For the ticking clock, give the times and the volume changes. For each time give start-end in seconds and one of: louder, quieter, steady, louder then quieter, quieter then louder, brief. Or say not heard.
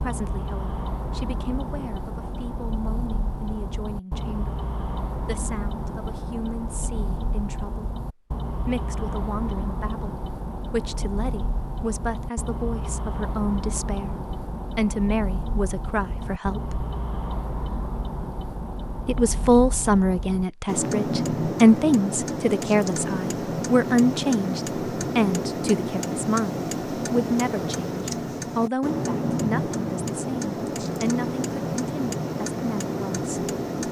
0.0-33.8 louder.